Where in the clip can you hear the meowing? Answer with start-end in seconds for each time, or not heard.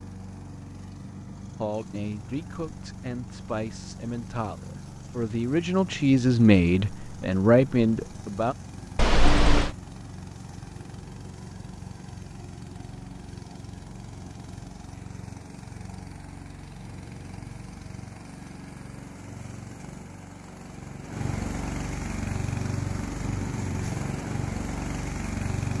8.9-9.7.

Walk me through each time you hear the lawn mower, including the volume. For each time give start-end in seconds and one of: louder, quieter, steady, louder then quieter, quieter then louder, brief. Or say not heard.
0.0-25.7 louder.